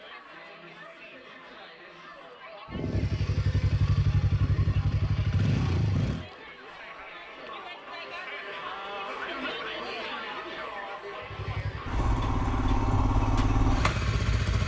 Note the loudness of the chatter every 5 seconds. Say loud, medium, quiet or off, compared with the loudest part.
medium, loud, loud.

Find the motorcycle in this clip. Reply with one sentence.
The motorcycle can be heard from 2.6 to 6.2 s and from 11.2 to 14.6 s.